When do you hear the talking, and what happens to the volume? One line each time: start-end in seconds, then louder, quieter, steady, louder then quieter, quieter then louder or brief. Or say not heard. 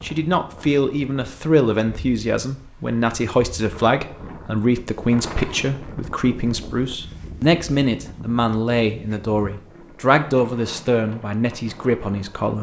0.0-12.5 steady.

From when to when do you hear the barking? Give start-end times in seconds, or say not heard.
not heard.